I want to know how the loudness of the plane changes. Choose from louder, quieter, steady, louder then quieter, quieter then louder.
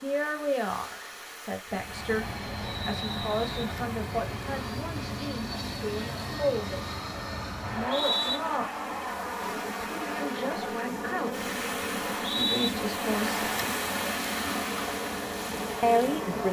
steady.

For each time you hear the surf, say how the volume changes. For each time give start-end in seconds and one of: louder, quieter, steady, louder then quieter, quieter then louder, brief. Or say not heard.
0.0-16.4 louder.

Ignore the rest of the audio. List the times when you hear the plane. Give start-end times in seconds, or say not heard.
1.6-16.4.